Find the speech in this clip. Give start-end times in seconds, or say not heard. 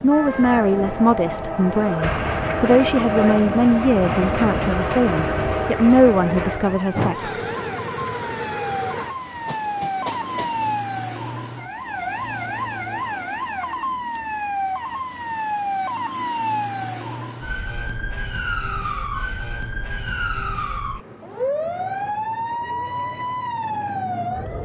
0.0-7.3.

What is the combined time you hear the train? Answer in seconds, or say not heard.
11 s.